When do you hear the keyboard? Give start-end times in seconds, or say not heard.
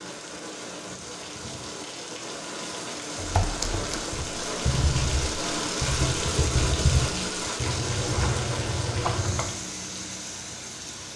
3.1-9.6.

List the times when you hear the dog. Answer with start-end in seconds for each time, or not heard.
not heard.